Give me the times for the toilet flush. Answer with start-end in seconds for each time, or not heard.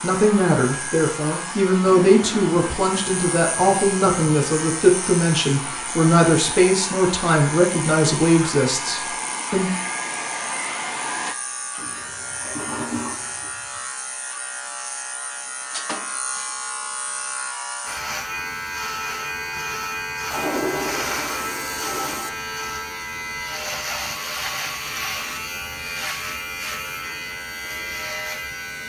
1.8-4.1, 11.8-13.8, 20.3-22.3.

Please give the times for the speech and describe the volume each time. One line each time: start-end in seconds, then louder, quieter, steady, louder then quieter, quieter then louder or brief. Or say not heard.
0.0-9.7 steady.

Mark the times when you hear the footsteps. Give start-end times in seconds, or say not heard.
not heard.